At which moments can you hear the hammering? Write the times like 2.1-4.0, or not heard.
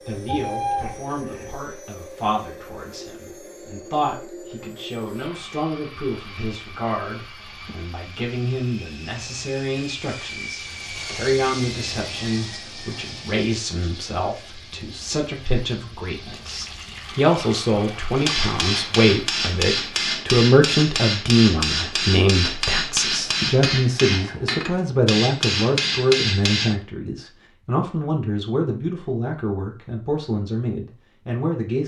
18.2-26.8.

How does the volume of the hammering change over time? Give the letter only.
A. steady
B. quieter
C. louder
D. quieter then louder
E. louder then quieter
A.